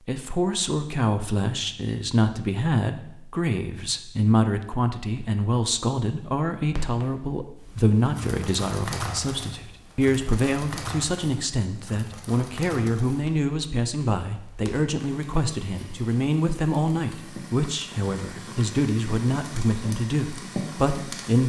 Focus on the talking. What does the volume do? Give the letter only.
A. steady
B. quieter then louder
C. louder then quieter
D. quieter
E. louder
A.